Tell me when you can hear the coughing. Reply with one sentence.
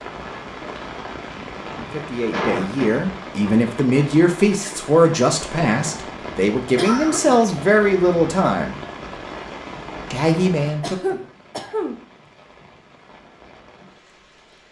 You can hear the coughing from 2.3 to 3.0 s, from 6.8 to 7.4 s and from 10.8 to 12.0 s.